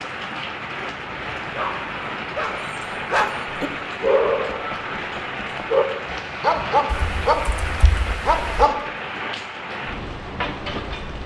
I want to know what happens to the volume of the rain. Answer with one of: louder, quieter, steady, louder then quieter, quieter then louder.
steady.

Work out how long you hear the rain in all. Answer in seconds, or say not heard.
11 s.